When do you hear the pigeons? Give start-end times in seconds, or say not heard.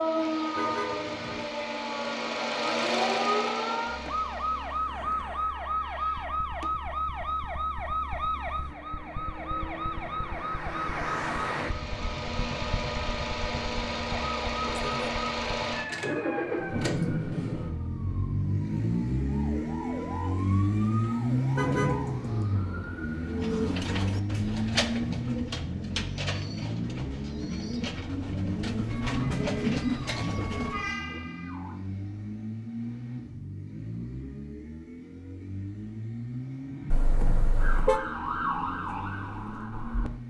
23.2-30.9.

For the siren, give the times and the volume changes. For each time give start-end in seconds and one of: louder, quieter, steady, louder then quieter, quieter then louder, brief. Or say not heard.
0.0-23.9 quieter
29.1-31.8 brief
37.5-40.1 brief.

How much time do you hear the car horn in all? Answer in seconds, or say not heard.
3 s.